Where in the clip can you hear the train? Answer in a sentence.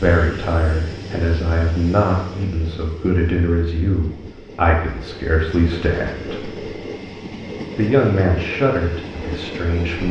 You can hear the train from 0.0 to 10.0 s.